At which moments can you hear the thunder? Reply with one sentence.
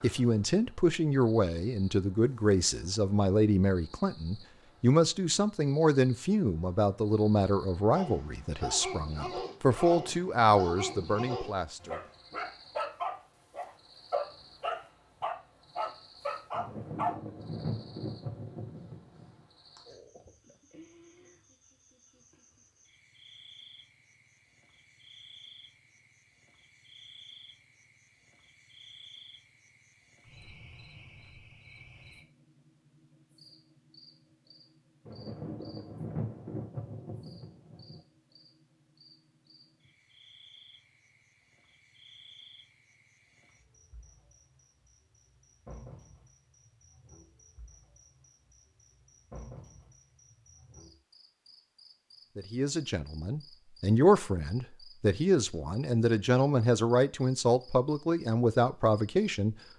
The thunder can be heard from 16.5 to 19.4 s and from 35.0 to 38.0 s.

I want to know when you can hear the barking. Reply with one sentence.
The barking can be heard from 7.9 to 17.1 s.